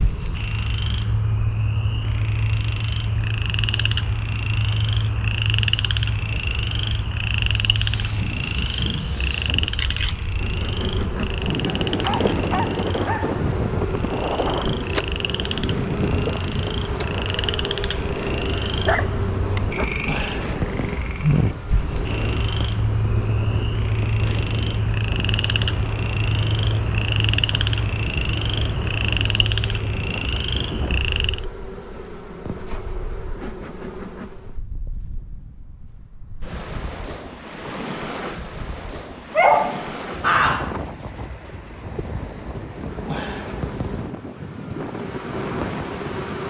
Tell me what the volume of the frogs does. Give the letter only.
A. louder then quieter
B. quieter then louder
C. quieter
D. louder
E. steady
B.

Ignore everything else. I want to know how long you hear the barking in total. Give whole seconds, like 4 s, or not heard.
4 s.